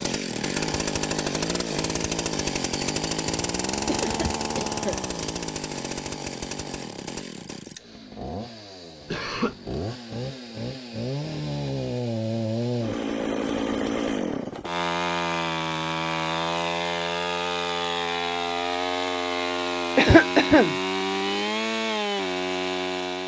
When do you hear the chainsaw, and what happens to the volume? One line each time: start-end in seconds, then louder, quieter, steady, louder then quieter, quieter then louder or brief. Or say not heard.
0.0-23.2 quieter then louder.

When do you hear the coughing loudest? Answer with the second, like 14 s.
20 s.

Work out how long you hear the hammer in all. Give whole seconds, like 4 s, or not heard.
not heard.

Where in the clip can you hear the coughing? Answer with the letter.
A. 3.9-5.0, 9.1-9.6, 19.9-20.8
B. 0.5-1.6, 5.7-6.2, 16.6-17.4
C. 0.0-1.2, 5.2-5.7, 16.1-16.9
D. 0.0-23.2
A.